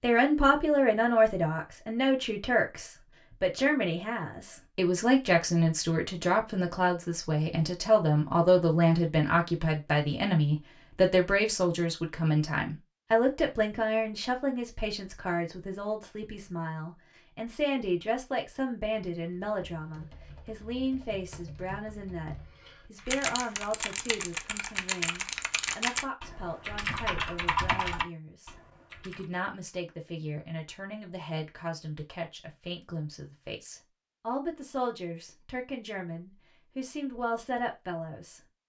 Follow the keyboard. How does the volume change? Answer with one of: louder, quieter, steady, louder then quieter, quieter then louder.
louder.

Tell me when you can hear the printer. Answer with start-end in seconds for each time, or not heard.
not heard.